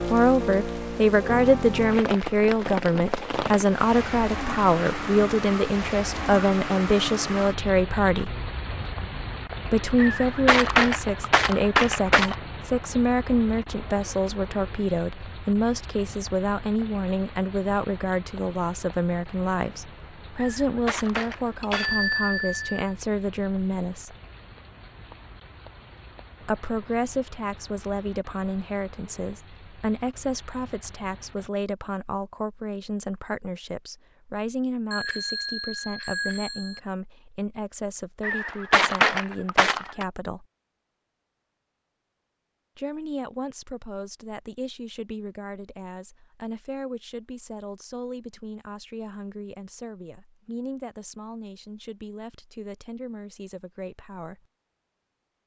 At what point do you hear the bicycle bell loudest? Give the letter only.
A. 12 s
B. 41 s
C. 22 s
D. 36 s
C.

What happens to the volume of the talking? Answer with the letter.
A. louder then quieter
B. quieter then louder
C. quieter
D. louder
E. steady
C.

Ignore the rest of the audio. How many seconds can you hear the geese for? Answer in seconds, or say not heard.
6 s.